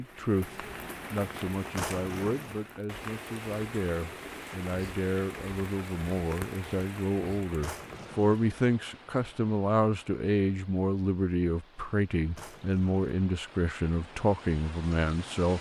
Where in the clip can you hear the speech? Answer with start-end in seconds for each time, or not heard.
0.0-15.5.